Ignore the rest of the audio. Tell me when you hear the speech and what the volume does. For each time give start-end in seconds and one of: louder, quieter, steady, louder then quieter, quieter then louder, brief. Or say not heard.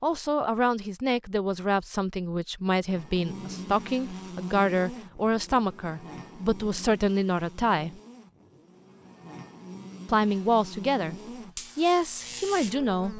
0.0-8.0 steady
10.1-11.2 brief
11.8-13.1 brief.